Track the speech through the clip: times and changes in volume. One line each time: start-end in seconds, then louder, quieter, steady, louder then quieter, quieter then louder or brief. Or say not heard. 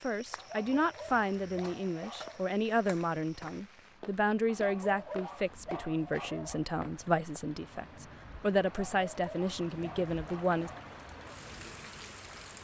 0.0-10.7 steady.